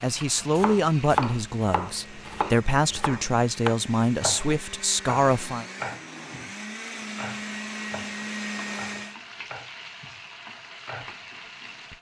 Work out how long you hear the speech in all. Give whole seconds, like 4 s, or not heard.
6 s.